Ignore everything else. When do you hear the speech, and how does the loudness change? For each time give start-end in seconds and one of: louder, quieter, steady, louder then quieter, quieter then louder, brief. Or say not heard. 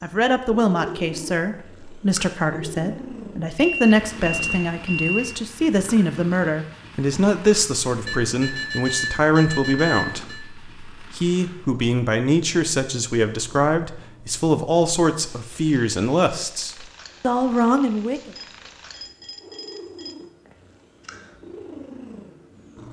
0.0-18.3 steady.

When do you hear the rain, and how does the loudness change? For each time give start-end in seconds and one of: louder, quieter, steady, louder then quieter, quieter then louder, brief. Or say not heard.
not heard.